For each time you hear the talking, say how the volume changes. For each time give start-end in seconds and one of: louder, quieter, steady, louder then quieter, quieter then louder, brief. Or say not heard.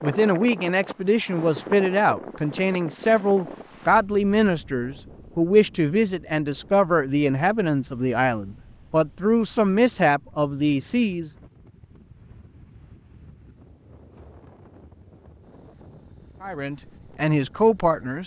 0.0-11.3 steady
16.4-18.2 brief.